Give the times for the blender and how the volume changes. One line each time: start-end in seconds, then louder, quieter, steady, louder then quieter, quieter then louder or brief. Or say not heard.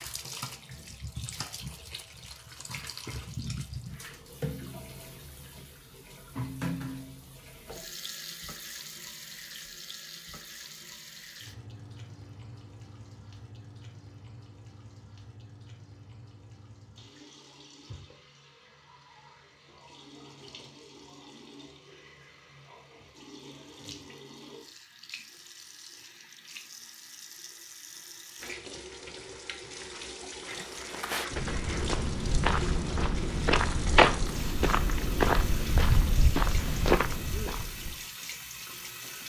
not heard.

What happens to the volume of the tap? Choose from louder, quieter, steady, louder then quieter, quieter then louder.
quieter then louder.